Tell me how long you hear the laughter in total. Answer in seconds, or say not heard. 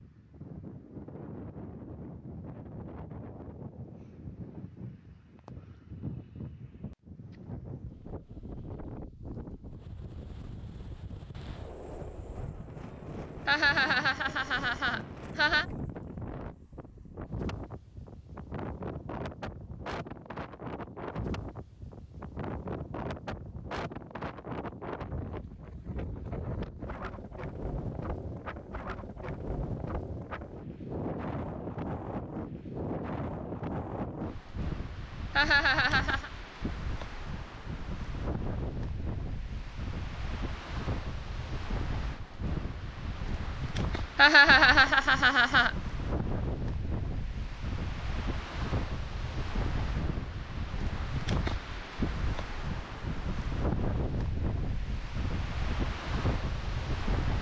5 s.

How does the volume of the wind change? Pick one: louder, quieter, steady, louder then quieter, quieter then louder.
louder.